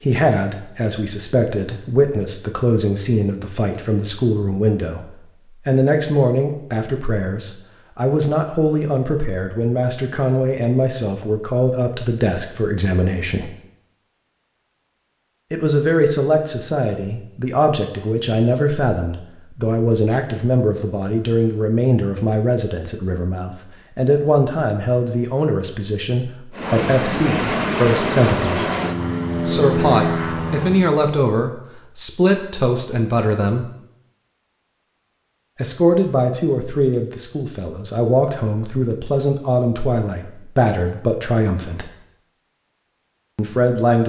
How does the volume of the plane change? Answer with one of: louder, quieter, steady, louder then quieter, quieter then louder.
steady.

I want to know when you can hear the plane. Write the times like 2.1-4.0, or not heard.
26.5-30.9.